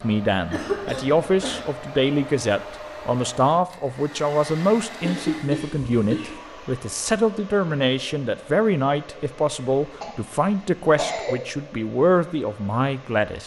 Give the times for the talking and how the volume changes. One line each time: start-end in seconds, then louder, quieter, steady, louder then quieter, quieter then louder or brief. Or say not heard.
0.0-13.4 steady.